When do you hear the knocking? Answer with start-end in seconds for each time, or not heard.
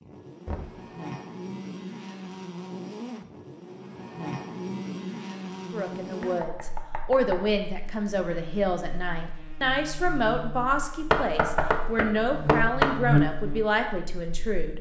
0.5-0.9, 6.2-7.5, 11.1-12.9.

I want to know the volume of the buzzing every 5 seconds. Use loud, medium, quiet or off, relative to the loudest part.
medium, medium, loud.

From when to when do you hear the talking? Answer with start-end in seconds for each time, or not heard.
5.7-14.7.